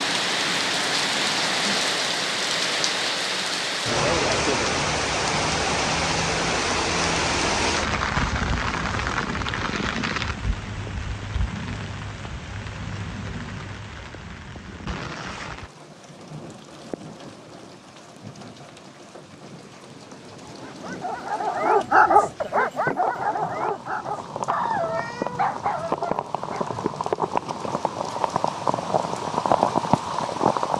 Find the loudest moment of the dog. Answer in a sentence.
The volume of the dog peaks at 22 seconds.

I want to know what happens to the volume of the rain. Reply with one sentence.
The loudness of the rain goes down, then up.